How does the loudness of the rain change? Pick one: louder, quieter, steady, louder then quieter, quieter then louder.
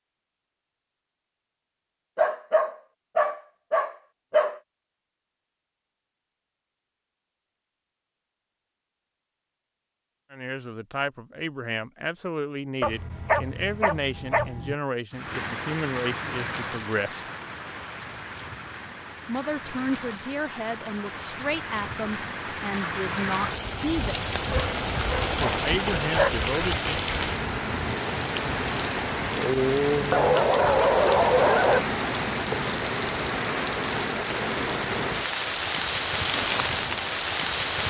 louder.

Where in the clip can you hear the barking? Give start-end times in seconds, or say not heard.
2.1-4.6, 12.8-14.8, 24.5-26.3, 30.1-31.9.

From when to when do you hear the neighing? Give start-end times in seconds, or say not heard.
not heard.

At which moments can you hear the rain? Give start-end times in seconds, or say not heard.
15.1-37.8.